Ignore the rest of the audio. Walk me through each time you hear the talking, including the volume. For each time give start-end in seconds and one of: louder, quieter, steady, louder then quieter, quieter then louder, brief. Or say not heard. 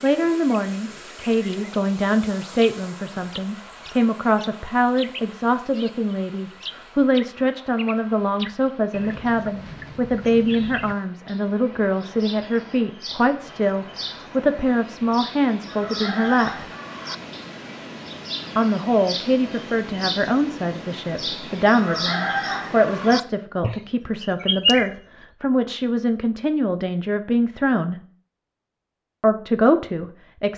0.0-16.6 steady
18.6-28.0 steady
29.2-30.5 brief.